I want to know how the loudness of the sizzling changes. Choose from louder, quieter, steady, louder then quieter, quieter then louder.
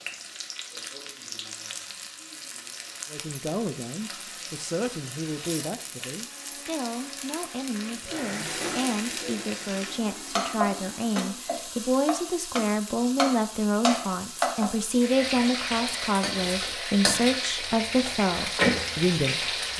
louder.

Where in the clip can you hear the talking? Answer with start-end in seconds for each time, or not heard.
3.1-19.7.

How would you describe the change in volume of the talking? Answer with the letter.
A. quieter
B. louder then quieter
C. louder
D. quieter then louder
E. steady
C.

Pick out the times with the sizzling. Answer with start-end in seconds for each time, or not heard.
0.0-19.7.